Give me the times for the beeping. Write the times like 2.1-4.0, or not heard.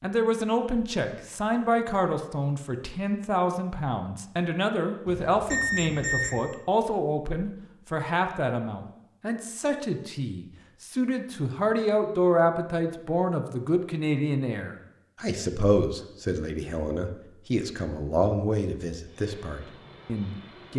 5.0-6.4.